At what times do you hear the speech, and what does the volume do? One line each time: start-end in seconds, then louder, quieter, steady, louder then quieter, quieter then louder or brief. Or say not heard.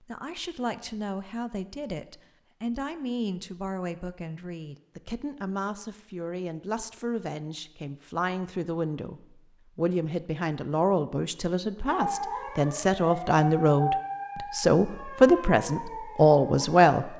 0.0-17.1 louder.